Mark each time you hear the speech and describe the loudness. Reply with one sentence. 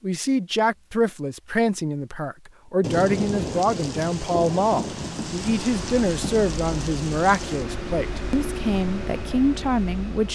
You can hear the speech from 0.0 to 10.3 s, at a steady volume.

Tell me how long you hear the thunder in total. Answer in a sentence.
The thunder can be heard for 5 seconds in total.